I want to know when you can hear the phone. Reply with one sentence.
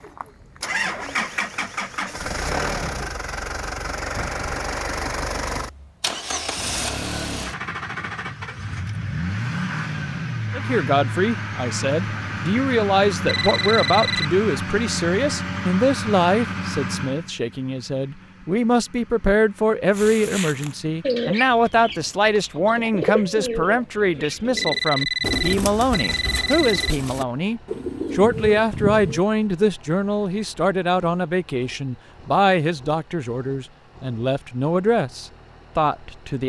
You can hear the phone from 13.2 to 14.2 s and from 24.6 to 26.9 s.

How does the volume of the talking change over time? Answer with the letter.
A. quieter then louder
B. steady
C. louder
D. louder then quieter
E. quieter
B.